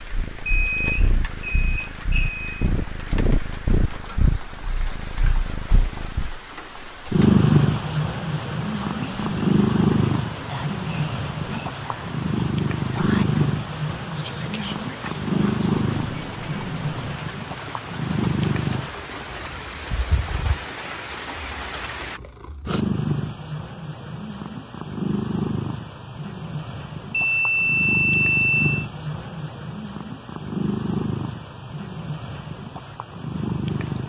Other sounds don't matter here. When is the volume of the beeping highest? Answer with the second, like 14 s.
28 s.